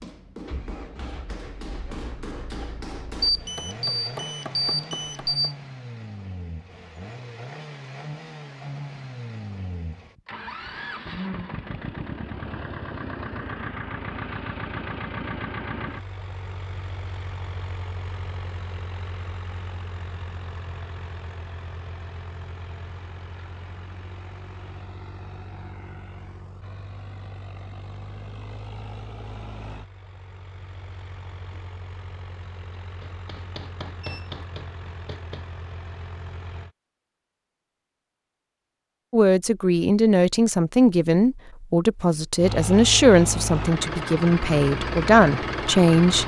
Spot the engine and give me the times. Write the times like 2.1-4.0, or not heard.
0.1-36.7, 42.4-46.2.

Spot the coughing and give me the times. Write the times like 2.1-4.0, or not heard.
not heard.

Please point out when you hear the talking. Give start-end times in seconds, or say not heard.
39.1-46.2.